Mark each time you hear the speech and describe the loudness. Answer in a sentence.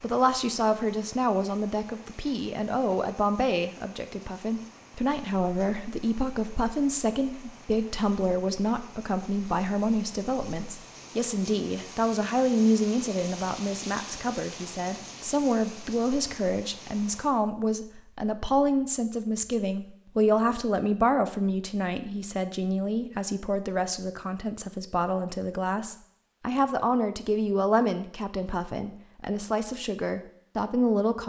You can hear the speech from 0.0 to 31.2 s, at a steady volume.